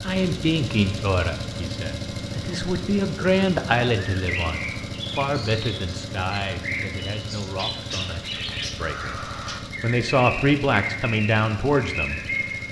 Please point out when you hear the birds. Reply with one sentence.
You can hear the birds from 4.0 to 12.6 s.